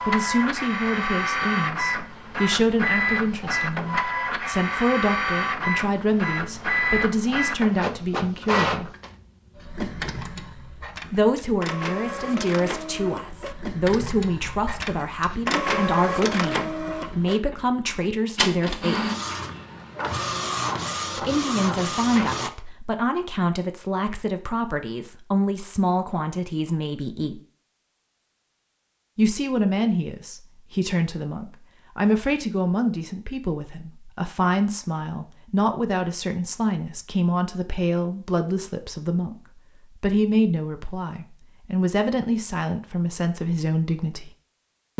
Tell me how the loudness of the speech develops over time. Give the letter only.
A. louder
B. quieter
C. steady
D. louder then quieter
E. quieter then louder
C.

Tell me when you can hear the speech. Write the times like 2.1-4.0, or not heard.
0.1-8.9, 11.1-19.1, 21.1-27.4, 29.1-44.3.